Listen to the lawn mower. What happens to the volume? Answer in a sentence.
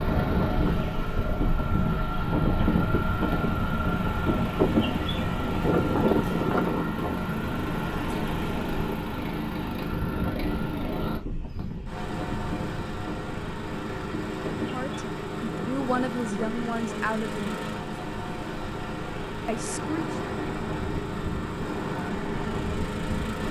The volume of the lawn mower stays about the same.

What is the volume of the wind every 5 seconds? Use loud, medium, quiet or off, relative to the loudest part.
loud, loud, medium, medium, medium.